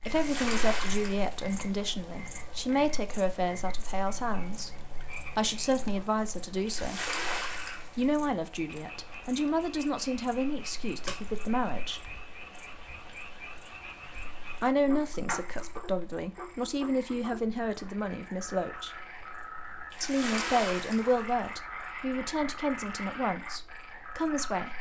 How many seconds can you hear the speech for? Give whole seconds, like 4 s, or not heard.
20 s.